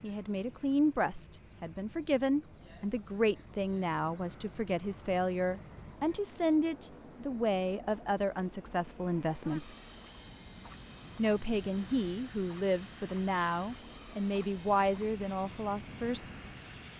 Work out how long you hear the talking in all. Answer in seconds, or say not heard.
15 s.